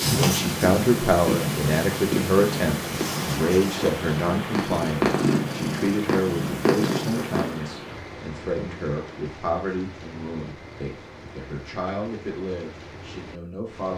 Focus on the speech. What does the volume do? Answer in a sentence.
The loudness of the speech goes down.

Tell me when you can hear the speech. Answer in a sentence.
The speech can be heard from 0.0 to 13.9 s.